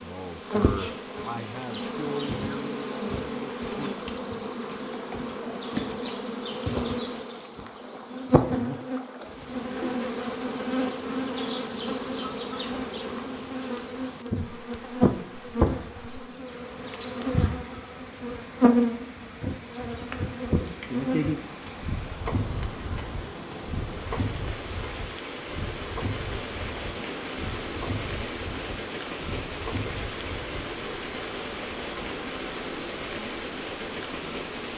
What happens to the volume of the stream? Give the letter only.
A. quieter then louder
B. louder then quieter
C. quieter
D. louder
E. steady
D.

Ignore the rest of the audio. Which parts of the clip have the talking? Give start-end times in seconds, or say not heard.
0.0-3.9.